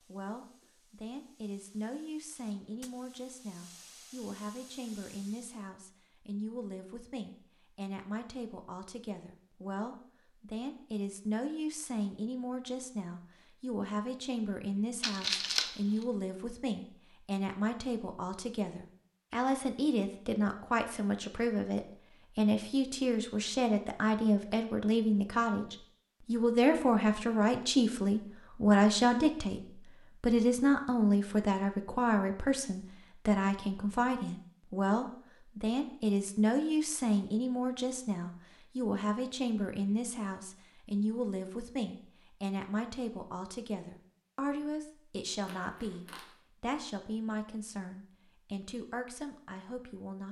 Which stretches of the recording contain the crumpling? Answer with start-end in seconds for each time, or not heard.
15.0-16.1, 45.4-46.4.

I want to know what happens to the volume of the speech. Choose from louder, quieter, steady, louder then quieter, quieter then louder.
louder then quieter.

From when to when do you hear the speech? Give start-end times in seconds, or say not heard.
0.1-50.2.